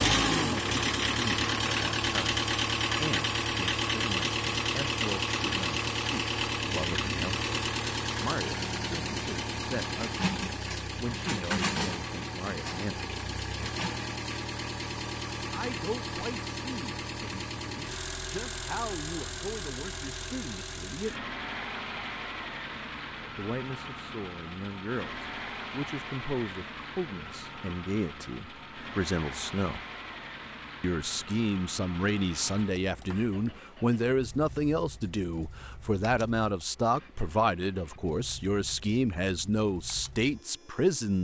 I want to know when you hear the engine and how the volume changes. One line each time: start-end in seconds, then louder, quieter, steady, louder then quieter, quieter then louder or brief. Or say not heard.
0.0-41.1 quieter.